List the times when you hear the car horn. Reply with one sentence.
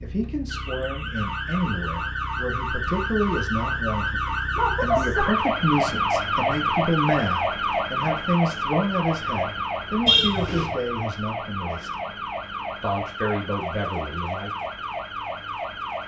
You can hear the car horn from 10.1 to 10.8 s.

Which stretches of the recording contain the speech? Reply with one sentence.
You can hear the speech from 0.0 to 11.9 s and from 12.8 to 14.7 s.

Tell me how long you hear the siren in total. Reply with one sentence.
The siren can be heard for 16 seconds in total.